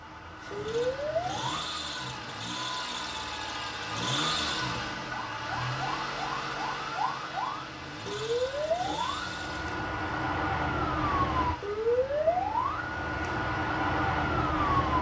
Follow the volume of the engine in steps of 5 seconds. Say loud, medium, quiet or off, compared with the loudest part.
loud, loud, medium.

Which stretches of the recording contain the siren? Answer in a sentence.
You can hear the siren from 0.0 to 1.5 s and from 5.0 to 14.9 s.